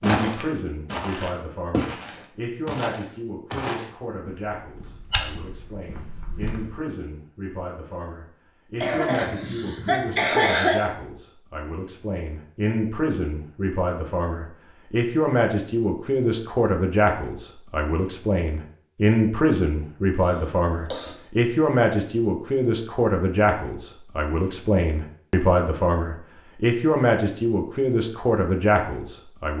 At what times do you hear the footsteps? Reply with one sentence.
The footsteps can be heard from 0.0 to 6.7 s.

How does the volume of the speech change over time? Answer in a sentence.
The loudness of the speech goes up.